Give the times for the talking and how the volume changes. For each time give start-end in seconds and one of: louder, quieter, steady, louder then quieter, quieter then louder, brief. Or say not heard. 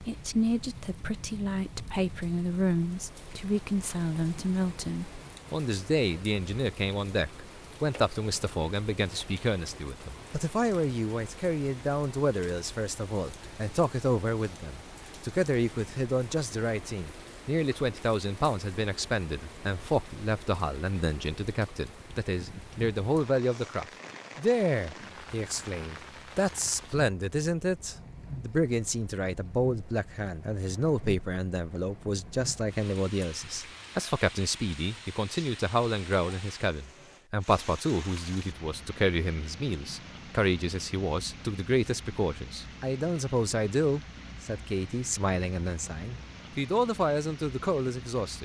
0.0-48.4 steady.